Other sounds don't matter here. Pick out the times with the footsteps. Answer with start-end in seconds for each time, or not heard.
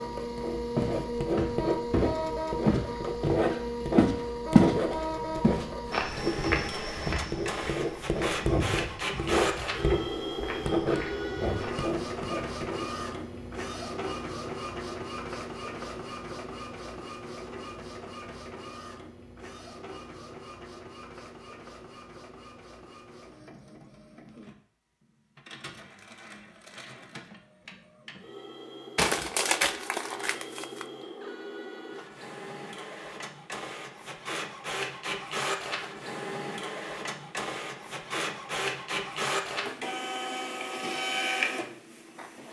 0.8-4.8, 5.4-11.8.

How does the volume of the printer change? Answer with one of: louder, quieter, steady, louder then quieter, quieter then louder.
quieter then louder.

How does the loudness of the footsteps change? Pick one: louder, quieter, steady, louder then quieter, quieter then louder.
quieter.